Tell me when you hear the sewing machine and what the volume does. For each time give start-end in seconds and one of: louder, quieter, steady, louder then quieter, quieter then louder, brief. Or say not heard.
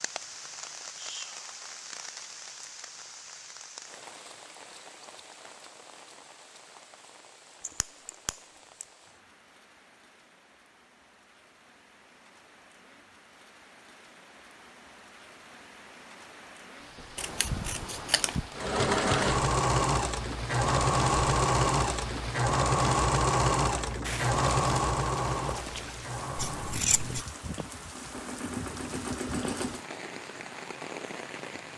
18.6-29.9 quieter.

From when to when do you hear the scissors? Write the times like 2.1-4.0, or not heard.
7.6-8.8, 17.1-18.6, 26.4-27.2.